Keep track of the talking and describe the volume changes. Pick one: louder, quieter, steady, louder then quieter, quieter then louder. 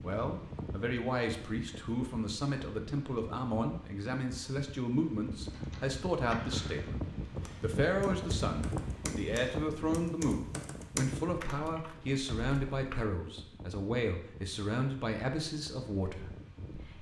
steady.